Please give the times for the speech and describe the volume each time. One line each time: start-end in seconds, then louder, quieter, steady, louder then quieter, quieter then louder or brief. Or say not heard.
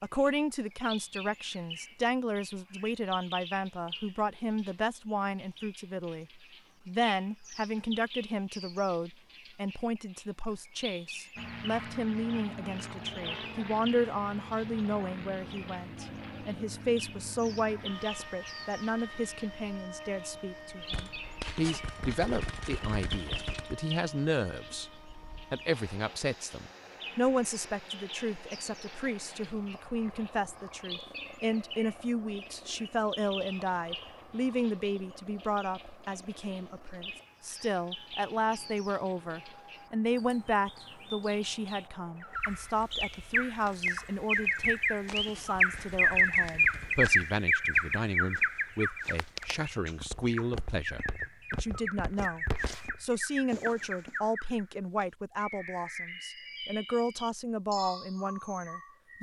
0.0-24.9 steady
25.5-59.1 steady.